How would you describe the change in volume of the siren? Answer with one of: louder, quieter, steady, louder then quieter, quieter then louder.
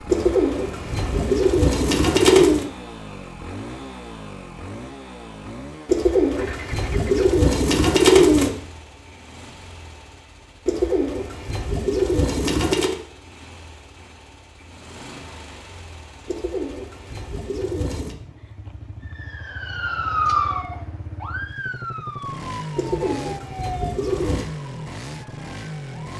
quieter.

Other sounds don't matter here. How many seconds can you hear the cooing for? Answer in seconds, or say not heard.
11 s.